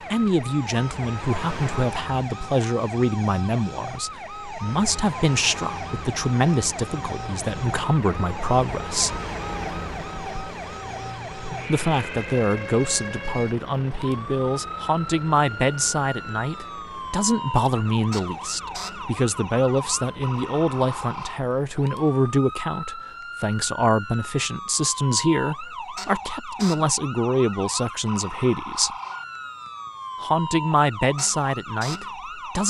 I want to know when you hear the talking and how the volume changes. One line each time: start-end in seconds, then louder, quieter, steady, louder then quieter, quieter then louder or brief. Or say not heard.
0.1-9.2 steady
11.7-28.9 steady
30.2-32.6 brief.